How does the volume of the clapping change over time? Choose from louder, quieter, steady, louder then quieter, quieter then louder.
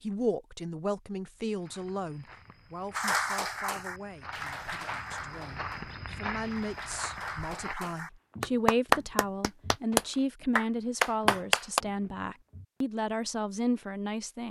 quieter then louder.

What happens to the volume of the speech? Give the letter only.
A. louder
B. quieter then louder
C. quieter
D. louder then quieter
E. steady
B.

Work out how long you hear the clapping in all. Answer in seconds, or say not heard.
9 s.